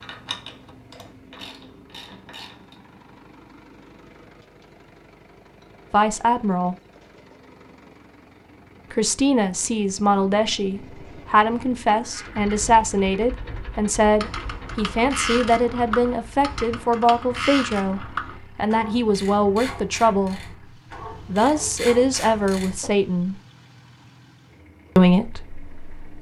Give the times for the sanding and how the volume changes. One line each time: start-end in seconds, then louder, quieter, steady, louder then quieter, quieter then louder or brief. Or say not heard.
not heard.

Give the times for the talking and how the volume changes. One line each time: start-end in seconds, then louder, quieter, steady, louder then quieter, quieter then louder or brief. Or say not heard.
5.9-6.8 brief
8.9-20.6 steady
21.2-23.4 brief
24.9-26.1 brief.